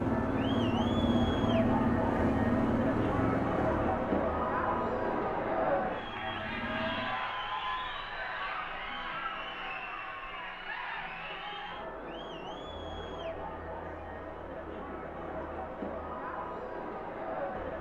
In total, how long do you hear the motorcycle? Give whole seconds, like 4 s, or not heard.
7 s.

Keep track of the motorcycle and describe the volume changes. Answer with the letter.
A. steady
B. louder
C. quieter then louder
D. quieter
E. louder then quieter
D.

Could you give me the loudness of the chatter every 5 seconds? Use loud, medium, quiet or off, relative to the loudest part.
loud, loud, medium, medium.